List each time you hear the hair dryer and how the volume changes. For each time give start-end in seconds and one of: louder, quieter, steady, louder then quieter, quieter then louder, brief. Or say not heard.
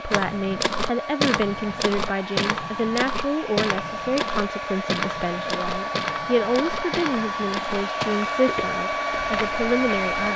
0.0-10.3 louder.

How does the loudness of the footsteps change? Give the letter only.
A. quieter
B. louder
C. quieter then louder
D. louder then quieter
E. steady
A.